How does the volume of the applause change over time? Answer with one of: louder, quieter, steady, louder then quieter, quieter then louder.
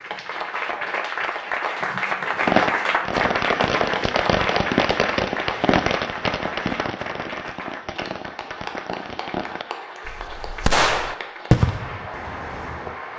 quieter.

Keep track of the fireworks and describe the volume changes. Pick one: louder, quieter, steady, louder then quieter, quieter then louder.
quieter then louder.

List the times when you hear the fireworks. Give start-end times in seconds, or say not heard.
2.4-12.8.